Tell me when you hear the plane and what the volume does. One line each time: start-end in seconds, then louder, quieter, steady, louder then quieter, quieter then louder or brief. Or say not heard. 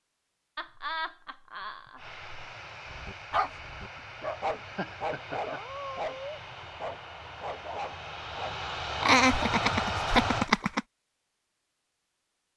1.9-10.5 louder.